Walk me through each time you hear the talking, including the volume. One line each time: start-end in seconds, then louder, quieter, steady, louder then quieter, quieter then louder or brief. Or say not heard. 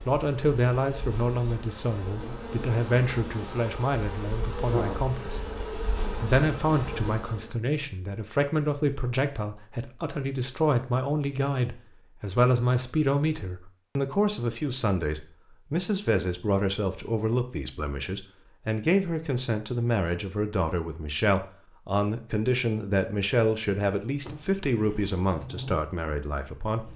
0.1-26.9 steady.